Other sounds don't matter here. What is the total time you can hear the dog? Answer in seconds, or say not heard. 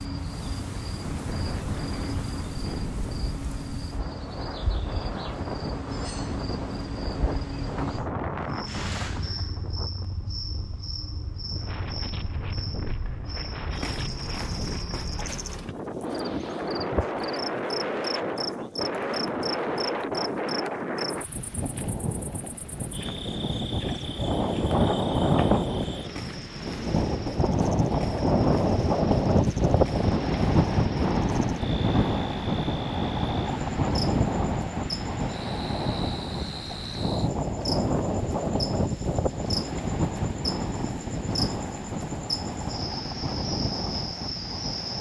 not heard.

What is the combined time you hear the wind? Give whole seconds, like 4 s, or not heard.
45 s.